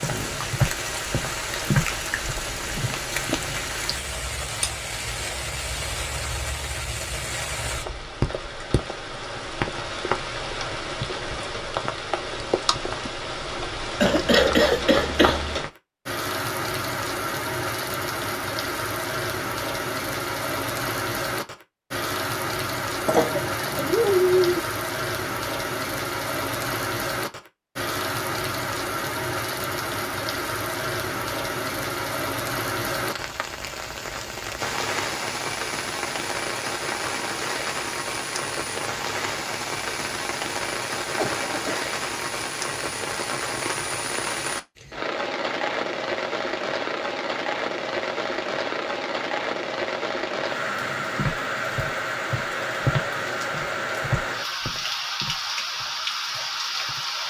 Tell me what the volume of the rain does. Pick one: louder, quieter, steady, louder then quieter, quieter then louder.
steady.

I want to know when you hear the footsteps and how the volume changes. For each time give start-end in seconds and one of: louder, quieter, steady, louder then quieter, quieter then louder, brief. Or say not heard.
0.0-3.0 brief
51.1-57.1 louder then quieter.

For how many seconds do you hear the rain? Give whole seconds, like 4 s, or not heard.
57 s.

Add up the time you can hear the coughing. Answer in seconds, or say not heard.
4 s.